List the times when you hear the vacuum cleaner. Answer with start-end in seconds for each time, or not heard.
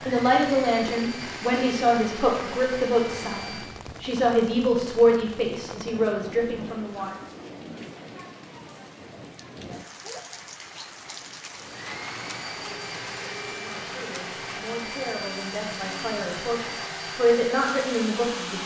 0.0-3.8, 11.6-18.6.